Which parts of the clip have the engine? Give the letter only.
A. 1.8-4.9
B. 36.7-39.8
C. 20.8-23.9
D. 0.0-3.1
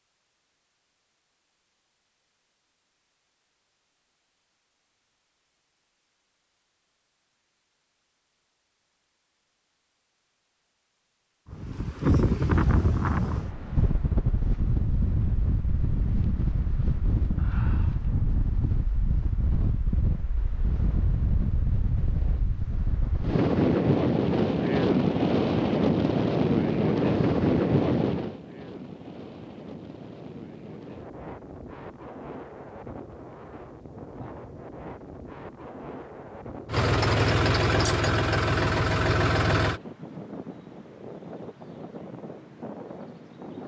B.